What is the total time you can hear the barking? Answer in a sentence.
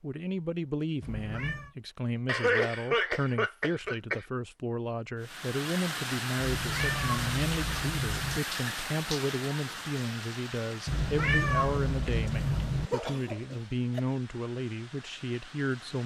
The barking can't be heard in this clip.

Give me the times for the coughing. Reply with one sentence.
The coughing can be heard from 2.2 to 4.2 s and from 12.8 to 14.0 s.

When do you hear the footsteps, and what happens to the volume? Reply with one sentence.
The footsteps can't be heard in this clip.